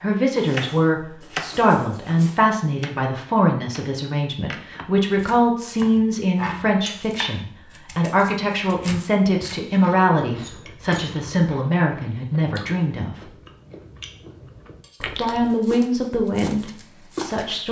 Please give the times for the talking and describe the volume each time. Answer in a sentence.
You can hear the talking from 0.0 to 13.3 s, at a steady volume; and briefly from 15.2 to 17.6 s.